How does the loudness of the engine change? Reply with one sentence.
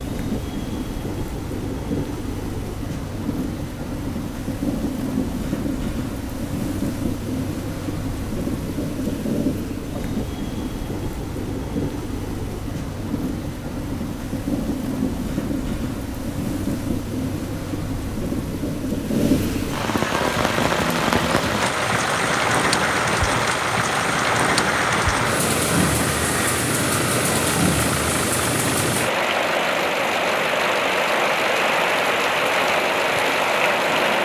The volume of the engine stays about the same.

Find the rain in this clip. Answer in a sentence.
The rain can be heard from 0.0 to 34.2 s.